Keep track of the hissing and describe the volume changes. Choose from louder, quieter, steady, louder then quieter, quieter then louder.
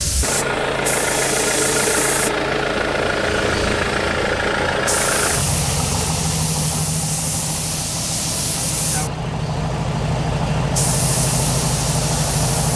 steady.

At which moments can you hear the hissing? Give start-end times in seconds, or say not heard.
0.0-12.7.